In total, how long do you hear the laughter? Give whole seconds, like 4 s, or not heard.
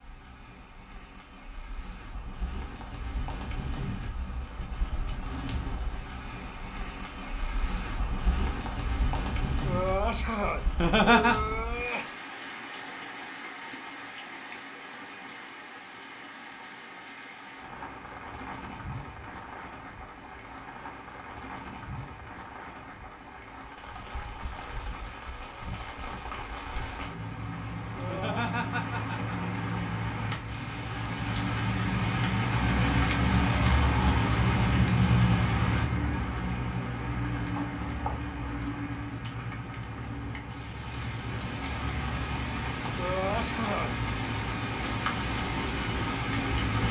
2 s.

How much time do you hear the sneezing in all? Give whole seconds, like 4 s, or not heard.
4 s.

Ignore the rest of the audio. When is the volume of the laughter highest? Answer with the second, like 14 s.
11 s.